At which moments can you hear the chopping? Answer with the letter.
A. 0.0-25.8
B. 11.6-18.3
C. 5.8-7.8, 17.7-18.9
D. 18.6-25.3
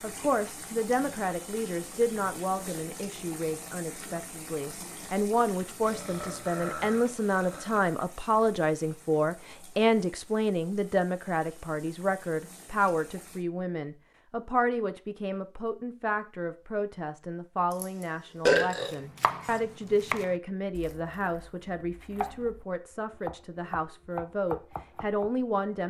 D.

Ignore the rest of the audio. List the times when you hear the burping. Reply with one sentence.
The burping can be heard from 5.8 to 7.8 s and from 17.7 to 18.9 s.